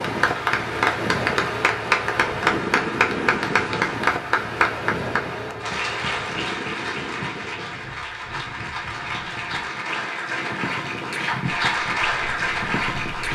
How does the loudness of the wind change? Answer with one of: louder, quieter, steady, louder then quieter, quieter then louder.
quieter.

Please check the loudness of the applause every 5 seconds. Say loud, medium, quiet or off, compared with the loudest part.
loud, medium, loud.